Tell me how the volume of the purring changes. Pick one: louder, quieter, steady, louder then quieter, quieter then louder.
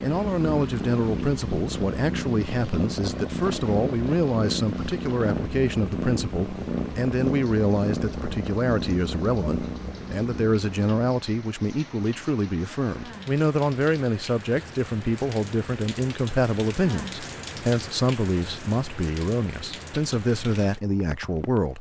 steady.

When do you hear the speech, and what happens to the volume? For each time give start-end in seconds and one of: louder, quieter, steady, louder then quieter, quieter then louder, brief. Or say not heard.
0.0-21.7 steady.